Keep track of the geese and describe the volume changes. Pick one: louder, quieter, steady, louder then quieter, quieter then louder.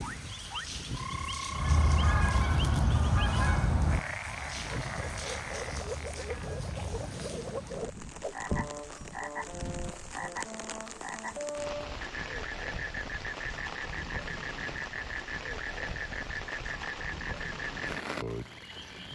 quieter.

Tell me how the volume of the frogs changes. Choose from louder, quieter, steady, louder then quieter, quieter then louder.
steady.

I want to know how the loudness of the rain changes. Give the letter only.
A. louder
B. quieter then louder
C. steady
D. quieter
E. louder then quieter
C.